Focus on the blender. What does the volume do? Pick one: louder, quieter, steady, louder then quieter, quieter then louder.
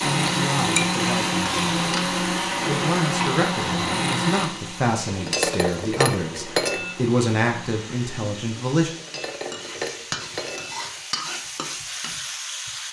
quieter.